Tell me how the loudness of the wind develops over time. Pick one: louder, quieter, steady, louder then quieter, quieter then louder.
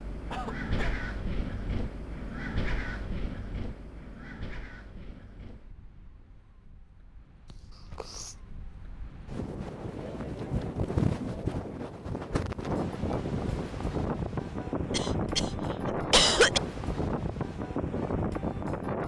quieter then louder.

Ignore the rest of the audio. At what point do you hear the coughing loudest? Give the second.
16 s.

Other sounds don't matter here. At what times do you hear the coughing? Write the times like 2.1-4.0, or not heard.
0.3-0.9, 7.5-8.3, 14.9-16.6.